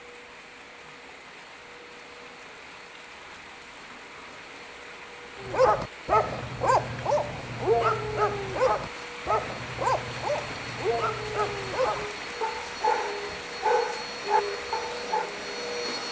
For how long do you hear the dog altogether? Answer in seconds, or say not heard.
10 s.